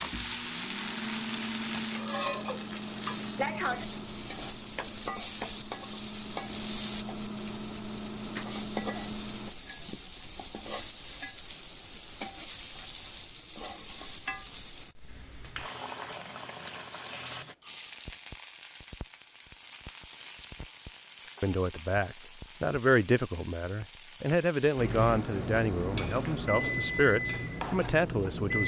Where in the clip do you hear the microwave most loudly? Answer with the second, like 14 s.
27 s.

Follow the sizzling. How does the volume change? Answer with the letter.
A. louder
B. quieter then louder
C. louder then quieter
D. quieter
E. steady
D.